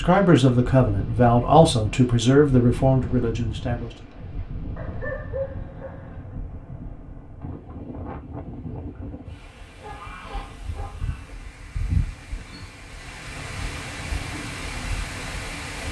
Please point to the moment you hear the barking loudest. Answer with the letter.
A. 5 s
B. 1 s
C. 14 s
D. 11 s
A.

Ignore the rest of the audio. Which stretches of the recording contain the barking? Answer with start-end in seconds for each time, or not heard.
4.8-6.3, 9.5-11.3.